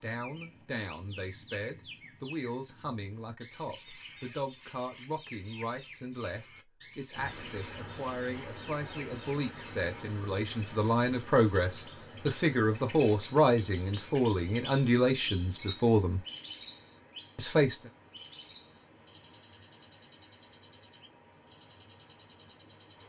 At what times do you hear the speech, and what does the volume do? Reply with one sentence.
The speech can be heard from 0.0 to 16.2 s, getting louder; and briefly from 17.4 to 17.9 s.